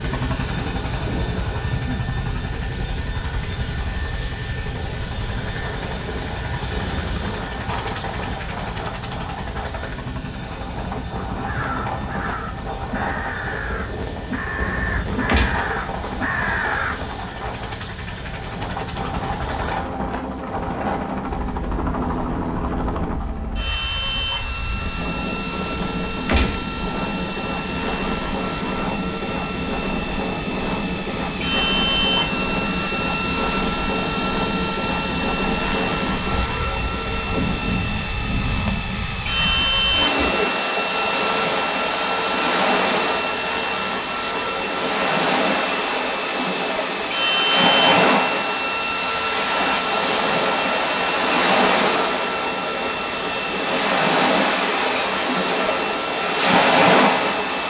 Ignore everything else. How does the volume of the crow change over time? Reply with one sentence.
The loudness of the crow goes up.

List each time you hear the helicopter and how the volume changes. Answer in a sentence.
You can hear the helicopter from 0.0 to 57.6 s, getting louder.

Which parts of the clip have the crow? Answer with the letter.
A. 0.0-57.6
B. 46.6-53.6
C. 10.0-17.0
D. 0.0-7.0
C.